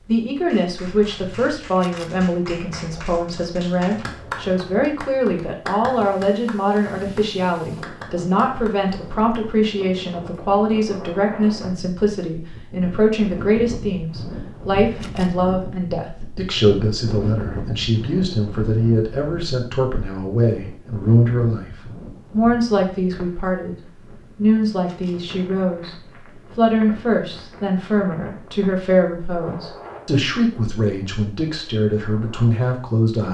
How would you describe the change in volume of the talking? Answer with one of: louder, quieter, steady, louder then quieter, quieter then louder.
steady.